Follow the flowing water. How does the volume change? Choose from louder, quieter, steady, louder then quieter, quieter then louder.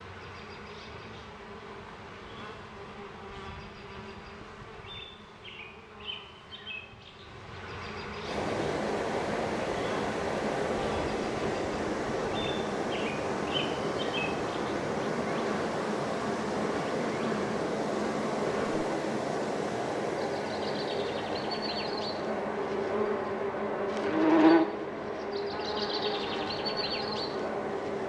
quieter.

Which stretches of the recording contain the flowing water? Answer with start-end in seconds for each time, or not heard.
8.2-28.0.